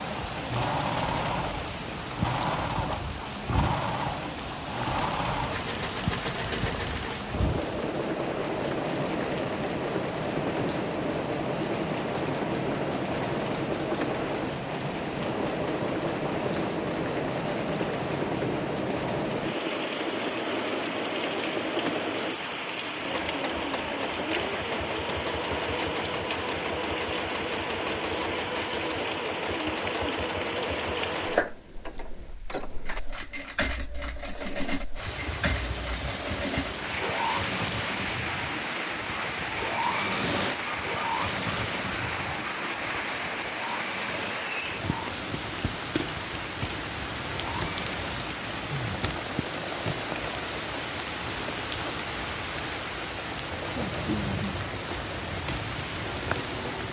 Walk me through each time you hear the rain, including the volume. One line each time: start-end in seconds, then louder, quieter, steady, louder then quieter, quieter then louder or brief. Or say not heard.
0.0-56.8 steady.